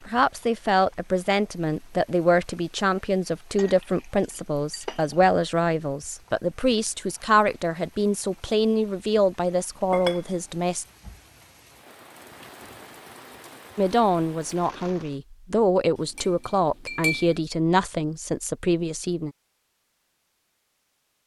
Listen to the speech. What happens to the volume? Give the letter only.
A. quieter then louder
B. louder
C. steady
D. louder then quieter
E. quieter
C.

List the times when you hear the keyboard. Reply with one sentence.
You can't hear the keyboard here.